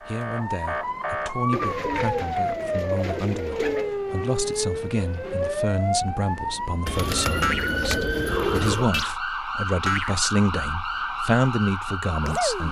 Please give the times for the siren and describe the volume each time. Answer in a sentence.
You can hear the siren from 0.0 to 12.6 s, at a steady volume.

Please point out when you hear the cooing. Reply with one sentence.
The cooing can be heard from 1.5 to 4.0 s and from 6.8 to 8.9 s.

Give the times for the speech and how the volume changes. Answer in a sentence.
You can hear the speech from 0.0 to 12.6 s, getting louder.